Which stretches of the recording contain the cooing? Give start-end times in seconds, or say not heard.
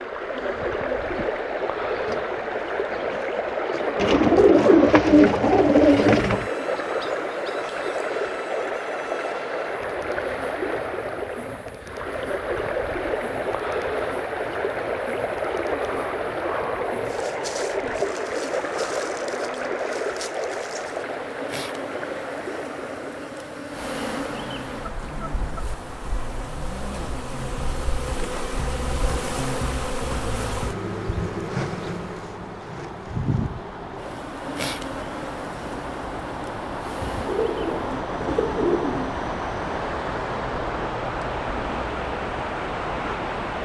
4.0-6.5, 37.1-39.2.